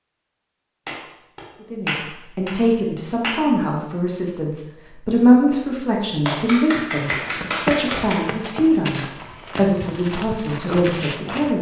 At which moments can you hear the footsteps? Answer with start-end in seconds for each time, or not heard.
7.0-11.5.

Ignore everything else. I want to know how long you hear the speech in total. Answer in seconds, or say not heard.
10 s.